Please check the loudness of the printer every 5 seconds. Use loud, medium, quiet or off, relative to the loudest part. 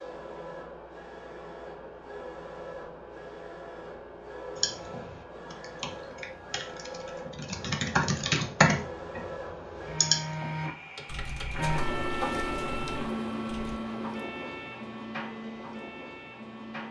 medium, medium, loud, medium.